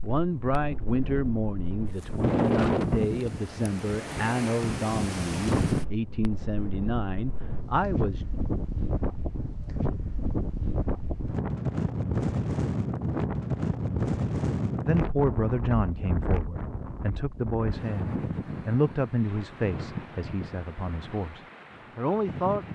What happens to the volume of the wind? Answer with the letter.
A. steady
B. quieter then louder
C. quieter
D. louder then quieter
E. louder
C.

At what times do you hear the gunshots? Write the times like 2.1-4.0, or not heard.
not heard.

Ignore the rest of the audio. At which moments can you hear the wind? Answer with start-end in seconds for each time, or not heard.
0.0-22.6.